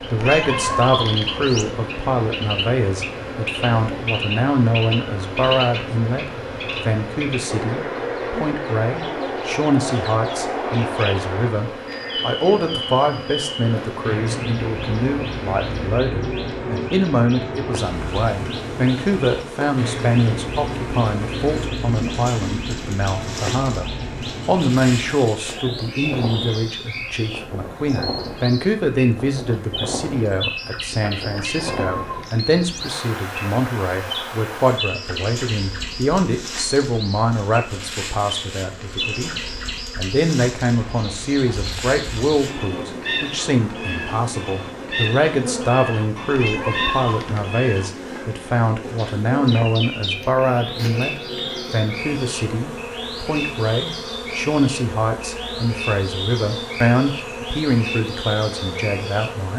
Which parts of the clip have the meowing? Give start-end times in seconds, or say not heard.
0.1-1.7, 31.4-32.9, 46.3-47.5.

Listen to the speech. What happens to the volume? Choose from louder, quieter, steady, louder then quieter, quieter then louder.
steady.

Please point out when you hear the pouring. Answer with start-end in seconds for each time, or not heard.
not heard.